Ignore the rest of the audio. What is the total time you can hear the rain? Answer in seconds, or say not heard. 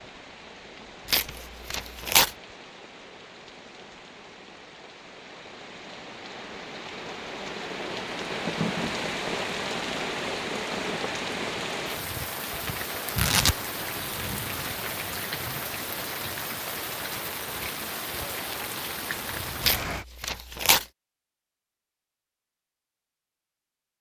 20 s.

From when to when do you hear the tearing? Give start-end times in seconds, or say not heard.
1.1-2.3, 13.2-14.0, 19.6-20.9.